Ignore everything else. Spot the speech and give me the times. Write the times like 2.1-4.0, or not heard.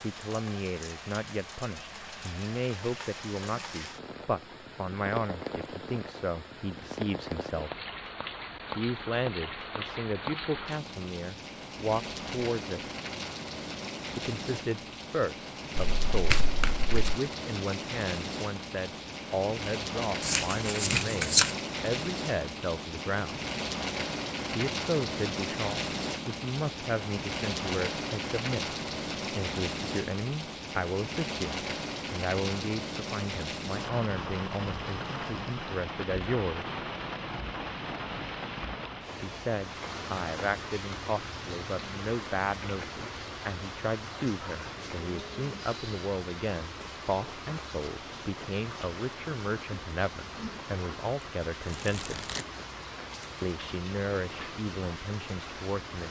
0.0-7.7, 8.8-12.8, 14.2-23.4, 24.5-36.8, 39.2-52.2, 53.4-56.0.